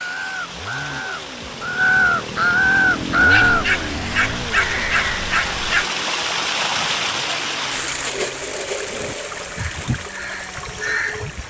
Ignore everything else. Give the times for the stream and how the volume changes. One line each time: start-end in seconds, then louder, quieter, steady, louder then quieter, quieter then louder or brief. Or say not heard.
0.0-11.4 louder then quieter.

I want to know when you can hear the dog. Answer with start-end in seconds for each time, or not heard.
3.2-5.8.